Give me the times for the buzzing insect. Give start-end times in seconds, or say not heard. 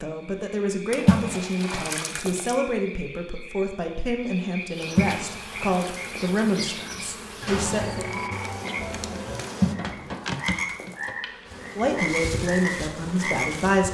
4.7-13.8.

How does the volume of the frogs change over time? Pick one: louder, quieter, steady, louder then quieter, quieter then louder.
louder.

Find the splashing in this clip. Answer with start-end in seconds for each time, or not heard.
0.9-2.5, 4.8-6.4, 9.4-11.1.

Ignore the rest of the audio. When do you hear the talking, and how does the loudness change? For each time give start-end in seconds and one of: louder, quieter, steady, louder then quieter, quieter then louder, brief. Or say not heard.
0.0-8.1 steady
11.8-13.8 brief.